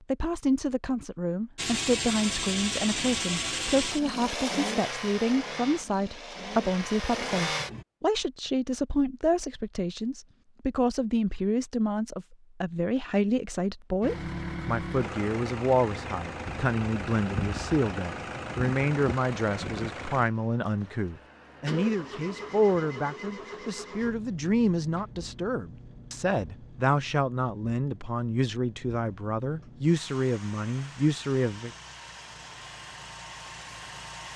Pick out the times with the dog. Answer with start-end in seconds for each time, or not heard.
not heard.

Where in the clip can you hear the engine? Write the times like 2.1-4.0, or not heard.
1.6-7.8, 14.0-34.3.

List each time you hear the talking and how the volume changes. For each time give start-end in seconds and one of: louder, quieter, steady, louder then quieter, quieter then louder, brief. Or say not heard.
0.1-31.7 steady.